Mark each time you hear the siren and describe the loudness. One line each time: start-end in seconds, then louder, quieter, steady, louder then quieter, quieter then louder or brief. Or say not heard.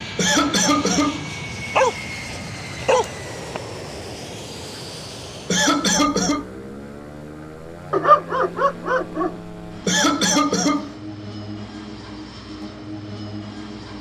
not heard.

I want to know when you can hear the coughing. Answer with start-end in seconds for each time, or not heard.
0.1-1.2, 5.5-6.5, 9.8-10.9.